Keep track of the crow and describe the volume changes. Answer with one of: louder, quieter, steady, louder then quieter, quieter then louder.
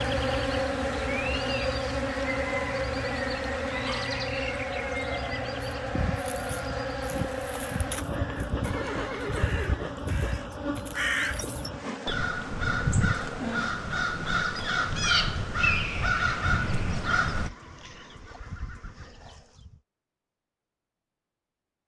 louder.